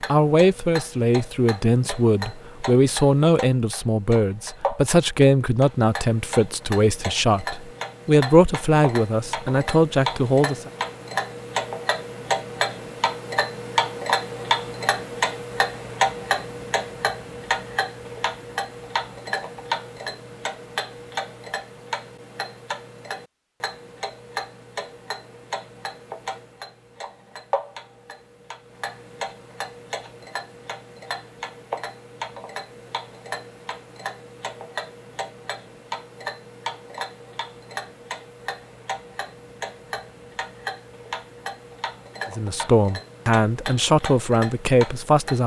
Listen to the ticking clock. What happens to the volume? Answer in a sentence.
The volume of the ticking clock goes up, then down.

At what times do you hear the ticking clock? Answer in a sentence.
The ticking clock can be heard from 0.0 to 45.4 s.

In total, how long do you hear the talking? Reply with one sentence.
The talking can be heard for 14 seconds in total.